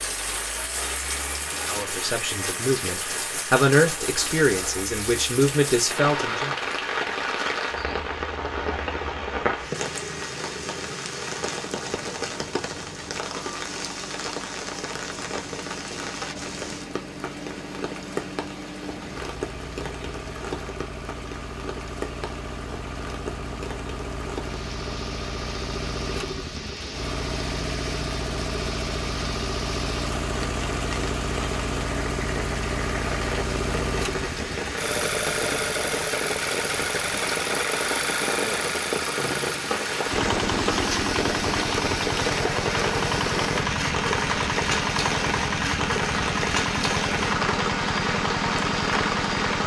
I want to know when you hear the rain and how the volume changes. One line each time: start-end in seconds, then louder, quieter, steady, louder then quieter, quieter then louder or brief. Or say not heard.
0.0-49.6 quieter then louder.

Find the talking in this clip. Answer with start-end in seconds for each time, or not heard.
1.6-6.5.